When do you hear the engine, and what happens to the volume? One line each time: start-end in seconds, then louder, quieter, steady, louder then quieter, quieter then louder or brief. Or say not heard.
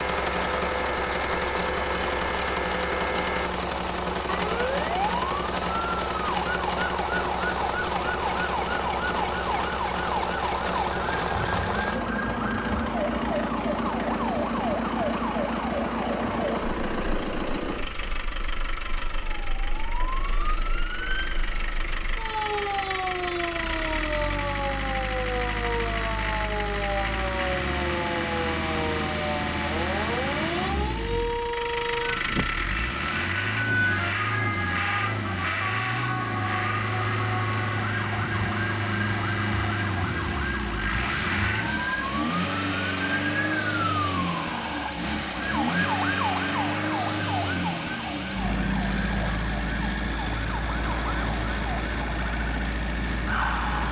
0.0-53.8 steady.